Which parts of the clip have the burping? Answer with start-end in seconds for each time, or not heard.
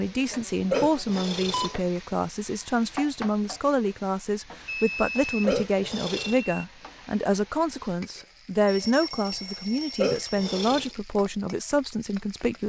0.7-1.8, 5.5-6.5, 10.0-10.9.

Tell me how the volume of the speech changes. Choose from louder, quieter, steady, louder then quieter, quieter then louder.
steady.